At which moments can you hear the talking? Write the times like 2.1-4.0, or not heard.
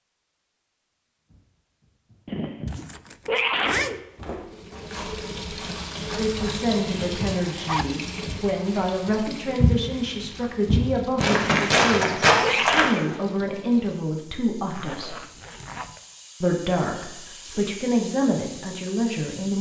6.2-15.2, 16.4-19.5.